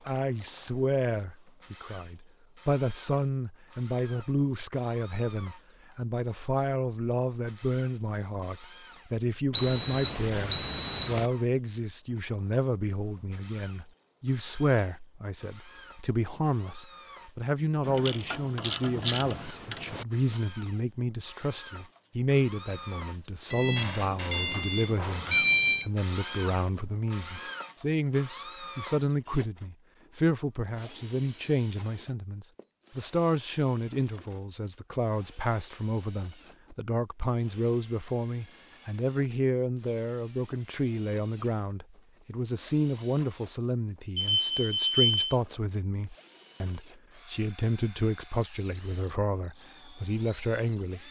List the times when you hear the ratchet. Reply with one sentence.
You can hear the ratchet from 17.9 to 20.4 s.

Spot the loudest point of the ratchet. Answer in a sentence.
The loudest moment of the ratchet is at 19 seconds.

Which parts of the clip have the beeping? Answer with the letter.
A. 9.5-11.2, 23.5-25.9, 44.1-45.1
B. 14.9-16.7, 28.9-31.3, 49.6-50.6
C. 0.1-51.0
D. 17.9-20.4
A.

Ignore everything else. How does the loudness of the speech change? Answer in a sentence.
The loudness of the speech stays about the same.